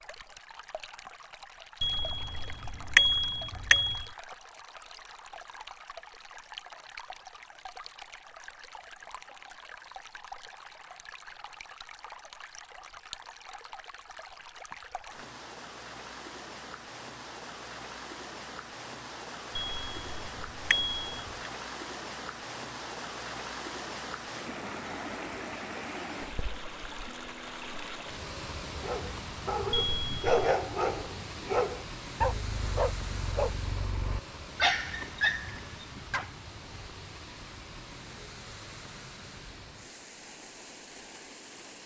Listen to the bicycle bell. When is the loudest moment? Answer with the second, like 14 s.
3 s.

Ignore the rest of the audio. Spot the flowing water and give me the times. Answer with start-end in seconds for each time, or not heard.
0.0-41.8.